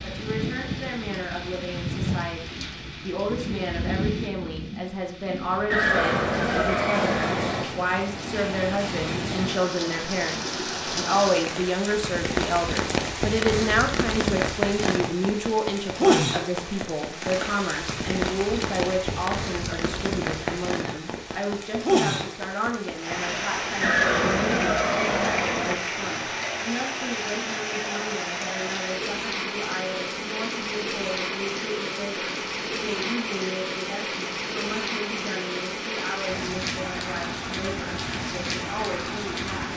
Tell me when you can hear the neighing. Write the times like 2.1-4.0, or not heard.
5.7-7.7, 23.8-25.8.